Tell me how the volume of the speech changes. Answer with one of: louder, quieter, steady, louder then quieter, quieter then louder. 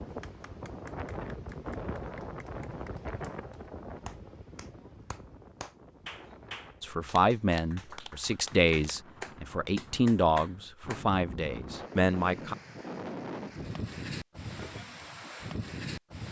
steady.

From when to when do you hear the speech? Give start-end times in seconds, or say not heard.
6.8-12.6.